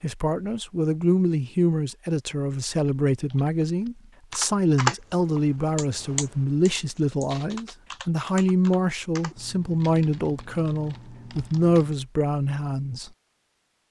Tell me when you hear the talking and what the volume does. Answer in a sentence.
The talking can be heard from 0.0 to 13.1 s, at a steady volume.